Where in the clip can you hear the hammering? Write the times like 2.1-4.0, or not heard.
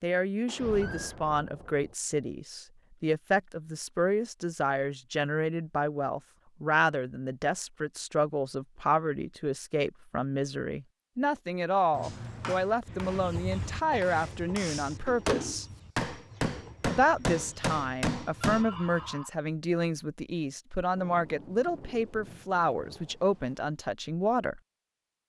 12.0-18.6.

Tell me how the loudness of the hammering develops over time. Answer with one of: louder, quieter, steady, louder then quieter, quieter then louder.
louder.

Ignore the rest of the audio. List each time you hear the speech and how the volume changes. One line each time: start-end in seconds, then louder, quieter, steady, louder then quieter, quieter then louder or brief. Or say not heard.
0.0-15.7 steady
16.9-24.6 steady.